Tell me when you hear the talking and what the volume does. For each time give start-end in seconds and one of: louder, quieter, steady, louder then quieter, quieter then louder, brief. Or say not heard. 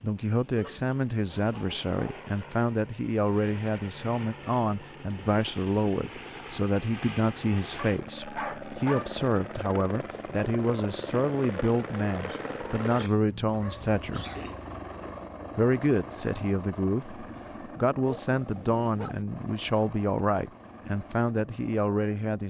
0.0-14.2 steady
15.6-22.4 steady.